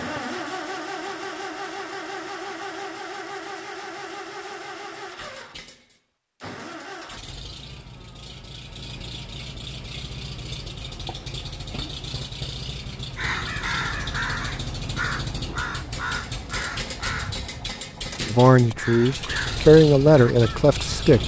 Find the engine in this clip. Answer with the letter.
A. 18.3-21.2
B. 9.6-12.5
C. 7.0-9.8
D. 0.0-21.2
D.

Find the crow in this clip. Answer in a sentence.
The crow can be heard from 13.2 to 21.2 s.